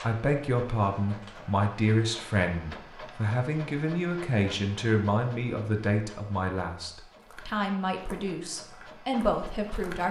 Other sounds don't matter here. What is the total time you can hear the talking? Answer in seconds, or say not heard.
10 s.